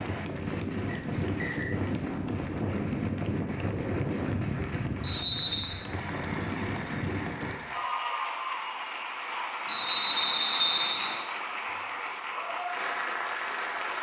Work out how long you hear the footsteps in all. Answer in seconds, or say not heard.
not heard.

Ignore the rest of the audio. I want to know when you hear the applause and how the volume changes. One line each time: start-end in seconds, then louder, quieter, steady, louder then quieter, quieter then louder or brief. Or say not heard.
0.0-13.9 louder.